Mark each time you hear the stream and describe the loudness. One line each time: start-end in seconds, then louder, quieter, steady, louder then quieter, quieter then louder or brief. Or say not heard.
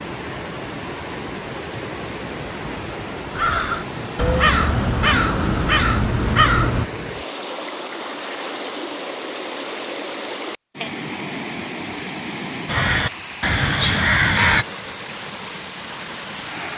0.0-16.7 steady.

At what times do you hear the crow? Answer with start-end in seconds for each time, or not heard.
3.3-6.8, 12.7-14.7.